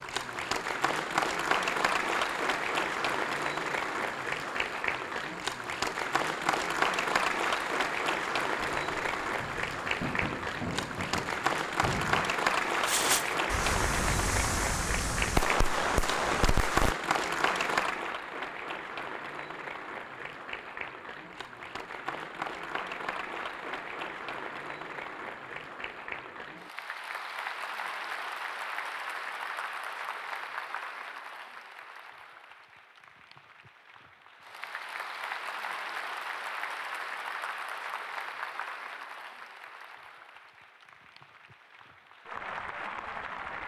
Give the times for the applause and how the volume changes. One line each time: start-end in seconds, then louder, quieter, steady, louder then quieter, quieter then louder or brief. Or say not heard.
0.0-43.6 quieter.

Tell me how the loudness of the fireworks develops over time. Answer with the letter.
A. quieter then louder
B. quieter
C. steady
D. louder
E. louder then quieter
D.